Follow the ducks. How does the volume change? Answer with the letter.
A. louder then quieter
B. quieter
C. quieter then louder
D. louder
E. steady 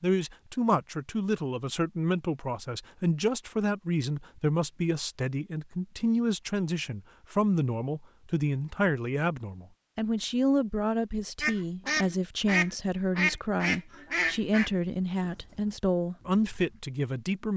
B.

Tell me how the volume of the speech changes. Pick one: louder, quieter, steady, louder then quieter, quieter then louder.
steady.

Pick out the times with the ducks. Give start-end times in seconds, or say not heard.
11.4-16.9.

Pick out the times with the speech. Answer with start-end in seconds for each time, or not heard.
0.0-17.5.